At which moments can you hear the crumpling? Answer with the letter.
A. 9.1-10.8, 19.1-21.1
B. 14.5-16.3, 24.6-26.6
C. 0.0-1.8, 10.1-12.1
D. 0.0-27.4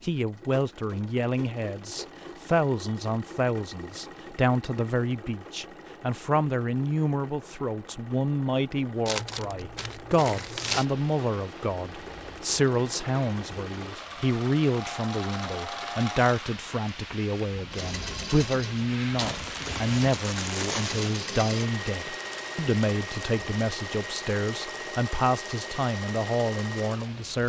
A.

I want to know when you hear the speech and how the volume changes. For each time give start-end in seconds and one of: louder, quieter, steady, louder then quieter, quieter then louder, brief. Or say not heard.
0.0-27.4 steady.